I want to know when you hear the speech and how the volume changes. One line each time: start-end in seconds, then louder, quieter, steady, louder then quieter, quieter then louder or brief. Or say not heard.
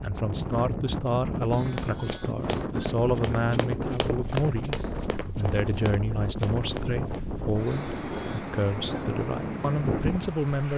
0.0-10.7 steady.